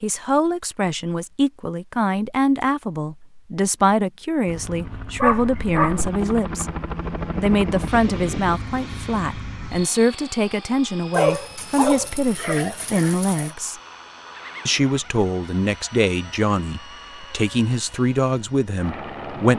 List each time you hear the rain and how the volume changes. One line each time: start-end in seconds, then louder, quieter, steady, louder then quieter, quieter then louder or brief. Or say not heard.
not heard.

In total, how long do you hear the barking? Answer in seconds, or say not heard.
3 s.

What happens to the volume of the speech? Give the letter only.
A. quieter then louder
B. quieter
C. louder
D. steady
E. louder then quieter
D.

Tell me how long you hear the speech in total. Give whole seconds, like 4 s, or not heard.
19 s.